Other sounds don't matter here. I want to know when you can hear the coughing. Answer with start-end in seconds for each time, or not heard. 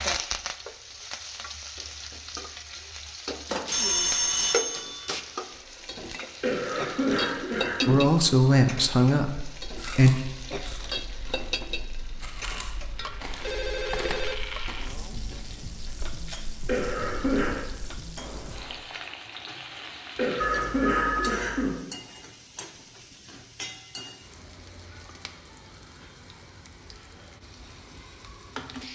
6.4-8.1, 16.6-17.6, 20.1-21.8.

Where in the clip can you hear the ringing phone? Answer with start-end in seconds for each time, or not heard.
3.5-5.2, 13.4-14.4, 20.4-21.8.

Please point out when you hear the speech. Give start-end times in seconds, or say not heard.
7.8-10.2.